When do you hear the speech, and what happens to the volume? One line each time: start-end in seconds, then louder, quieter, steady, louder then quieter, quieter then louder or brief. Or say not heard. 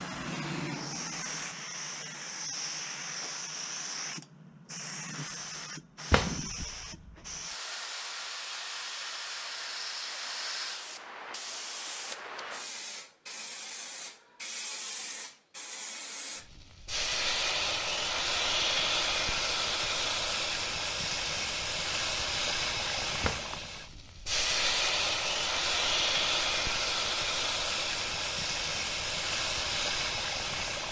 not heard.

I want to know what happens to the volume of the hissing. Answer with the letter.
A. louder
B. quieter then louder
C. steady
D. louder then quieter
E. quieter
A.